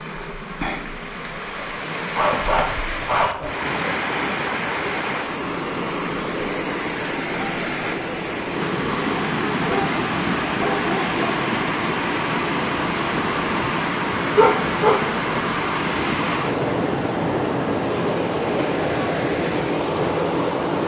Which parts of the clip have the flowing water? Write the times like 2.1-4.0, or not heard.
0.0-20.8.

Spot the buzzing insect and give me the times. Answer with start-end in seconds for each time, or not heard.
0.0-2.1.